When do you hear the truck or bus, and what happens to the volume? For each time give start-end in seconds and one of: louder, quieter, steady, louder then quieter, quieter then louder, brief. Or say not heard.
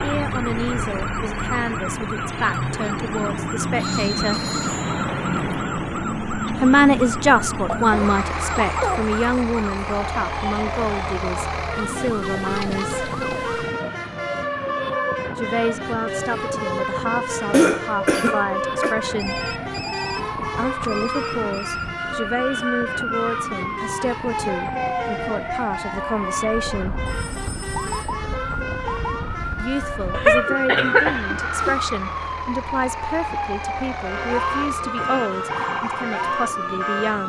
0.0-37.2 quieter.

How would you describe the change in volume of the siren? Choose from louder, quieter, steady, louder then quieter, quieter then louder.
louder.